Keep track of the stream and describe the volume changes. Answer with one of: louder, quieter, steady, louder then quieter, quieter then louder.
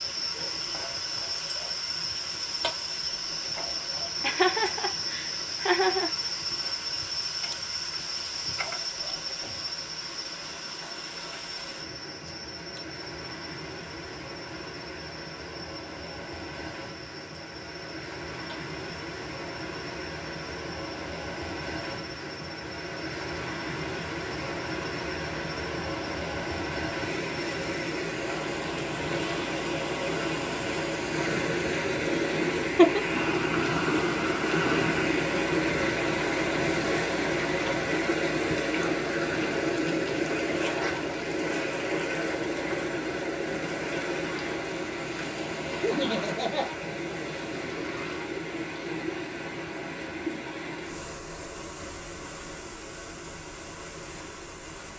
louder then quieter.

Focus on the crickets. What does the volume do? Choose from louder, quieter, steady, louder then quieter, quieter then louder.
quieter.